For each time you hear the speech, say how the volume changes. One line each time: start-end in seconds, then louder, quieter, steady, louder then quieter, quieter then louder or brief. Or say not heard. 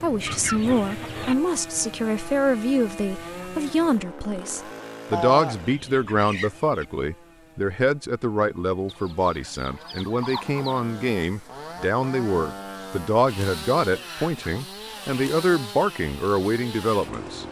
0.0-17.4 steady.